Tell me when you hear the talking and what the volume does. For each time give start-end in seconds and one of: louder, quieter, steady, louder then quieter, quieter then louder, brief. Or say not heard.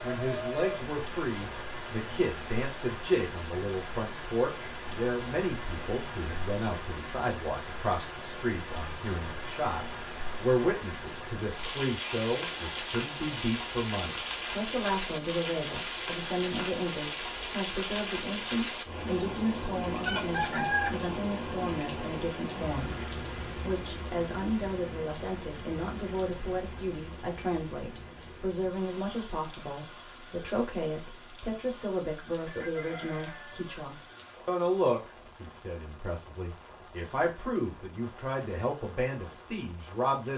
0.0-40.3 steady.